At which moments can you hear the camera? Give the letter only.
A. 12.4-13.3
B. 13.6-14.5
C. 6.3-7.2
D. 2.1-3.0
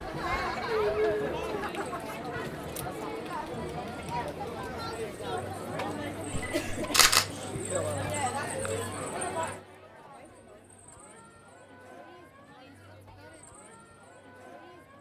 C.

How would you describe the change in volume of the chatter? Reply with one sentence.
The volume of the chatter goes down.